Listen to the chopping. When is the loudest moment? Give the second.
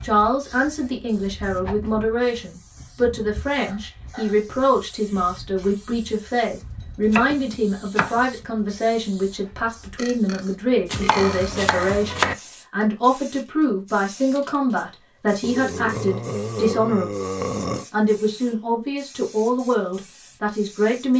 12 s.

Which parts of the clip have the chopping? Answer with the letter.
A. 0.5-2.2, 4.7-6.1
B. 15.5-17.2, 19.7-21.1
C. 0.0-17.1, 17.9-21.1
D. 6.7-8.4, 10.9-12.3
D.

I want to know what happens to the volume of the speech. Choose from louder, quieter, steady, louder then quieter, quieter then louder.
steady.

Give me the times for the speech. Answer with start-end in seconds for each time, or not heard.
0.0-17.1, 17.9-21.1.